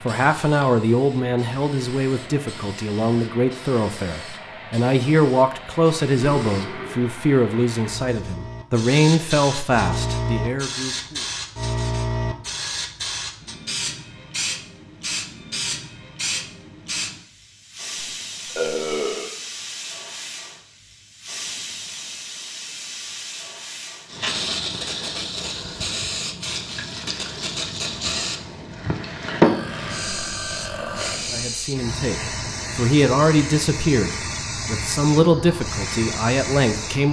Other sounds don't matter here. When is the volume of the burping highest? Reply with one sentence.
The loudest moment of the burping is at 19 seconds.